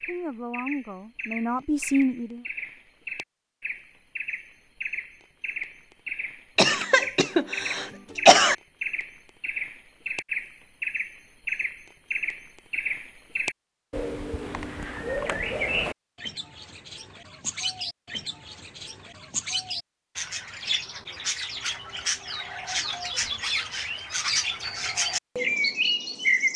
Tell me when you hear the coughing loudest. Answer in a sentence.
The volume of the coughing peaks at 8 seconds.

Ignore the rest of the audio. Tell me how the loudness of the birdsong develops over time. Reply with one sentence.
The volume of the birdsong goes up.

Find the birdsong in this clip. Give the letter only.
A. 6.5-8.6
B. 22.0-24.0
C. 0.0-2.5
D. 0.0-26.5
D.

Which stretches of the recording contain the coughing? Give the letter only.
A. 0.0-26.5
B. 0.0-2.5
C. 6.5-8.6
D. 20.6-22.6
C.